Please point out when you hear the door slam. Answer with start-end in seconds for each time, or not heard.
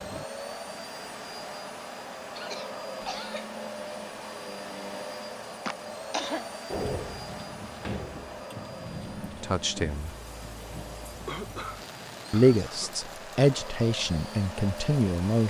6.7-8.4.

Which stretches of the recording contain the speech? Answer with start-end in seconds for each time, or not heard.
9.4-10.1, 12.3-15.4.